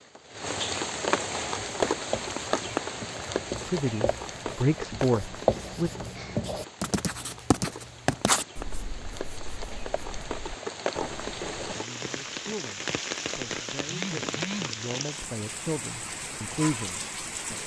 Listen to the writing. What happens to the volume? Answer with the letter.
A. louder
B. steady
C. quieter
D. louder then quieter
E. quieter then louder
D.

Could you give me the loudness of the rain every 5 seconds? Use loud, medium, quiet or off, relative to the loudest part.
loud, medium, loud, medium.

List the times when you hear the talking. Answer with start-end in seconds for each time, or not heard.
3.6-5.9, 11.8-17.6.